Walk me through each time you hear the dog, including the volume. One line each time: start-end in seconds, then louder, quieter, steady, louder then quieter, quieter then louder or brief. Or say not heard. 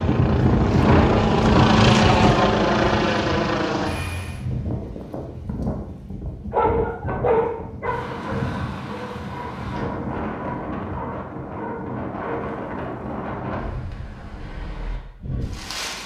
6.5-12.4 quieter.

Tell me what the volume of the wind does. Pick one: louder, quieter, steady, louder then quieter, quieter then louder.
quieter.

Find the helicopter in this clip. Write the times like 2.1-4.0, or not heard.
0.0-4.5.